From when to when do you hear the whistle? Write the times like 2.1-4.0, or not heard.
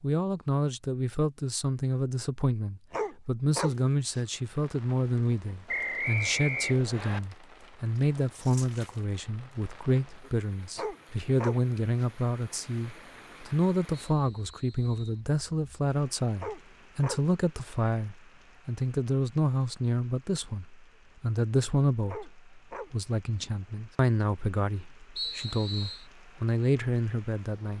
5.7-7.2, 14.2-15.2, 25.1-26.1.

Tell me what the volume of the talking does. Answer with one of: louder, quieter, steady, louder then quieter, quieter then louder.
steady.